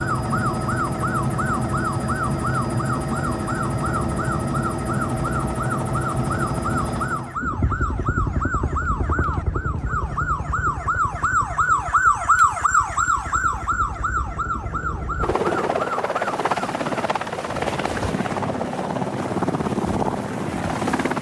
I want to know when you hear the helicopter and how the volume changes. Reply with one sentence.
You can hear the helicopter from 0.0 to 21.1 s, getting quieter then louder.